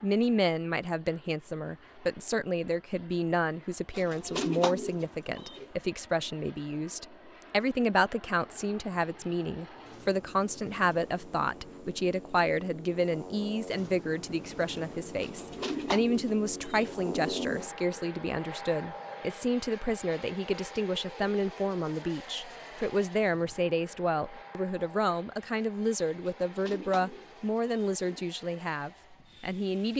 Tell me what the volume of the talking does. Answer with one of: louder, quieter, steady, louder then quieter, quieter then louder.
steady.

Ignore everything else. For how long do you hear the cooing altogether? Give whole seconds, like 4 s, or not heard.
6 s.